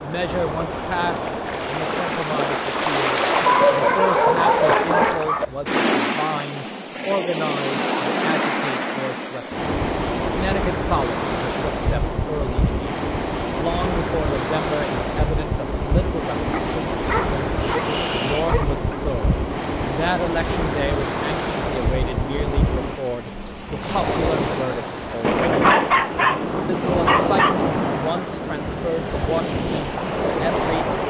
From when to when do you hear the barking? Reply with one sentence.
The barking can be heard from 3.5 to 5.5 s, from 16.5 to 19.0 s and from 25.1 to 27.6 s.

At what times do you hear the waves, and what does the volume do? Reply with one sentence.
The waves can be heard from 0.0 to 31.0 s, at a steady volume.